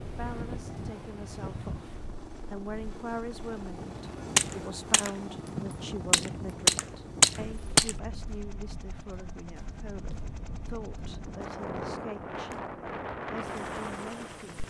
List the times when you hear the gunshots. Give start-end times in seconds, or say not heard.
4.3-8.0.